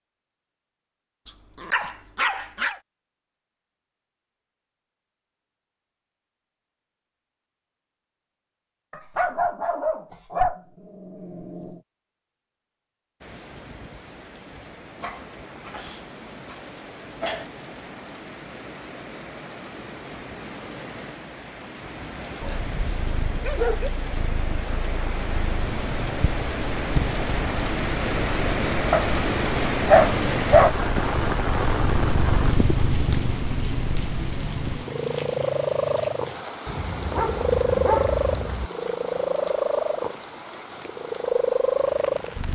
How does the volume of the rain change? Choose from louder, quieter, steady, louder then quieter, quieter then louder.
louder then quieter.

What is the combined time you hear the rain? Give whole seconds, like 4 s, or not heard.
29 s.